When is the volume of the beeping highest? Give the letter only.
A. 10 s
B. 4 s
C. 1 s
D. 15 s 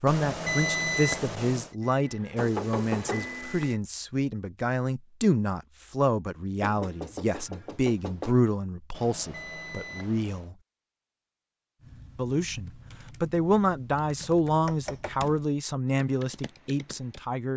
C.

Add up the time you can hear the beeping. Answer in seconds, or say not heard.
3 s.